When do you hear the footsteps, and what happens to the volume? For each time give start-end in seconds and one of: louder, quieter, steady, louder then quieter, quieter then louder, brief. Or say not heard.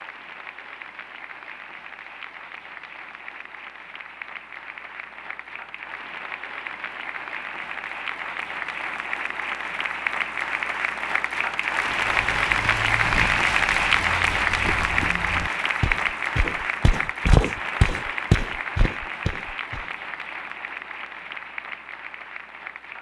11.8-19.9 louder.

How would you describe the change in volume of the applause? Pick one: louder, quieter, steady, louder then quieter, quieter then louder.
louder then quieter.